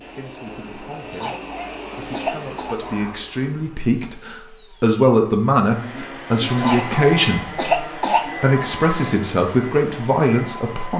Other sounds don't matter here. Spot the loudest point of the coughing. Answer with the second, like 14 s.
8 s.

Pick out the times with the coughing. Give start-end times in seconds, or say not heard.
1.1-2.8, 6.5-8.3.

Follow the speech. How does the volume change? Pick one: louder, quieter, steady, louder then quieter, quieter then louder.
louder.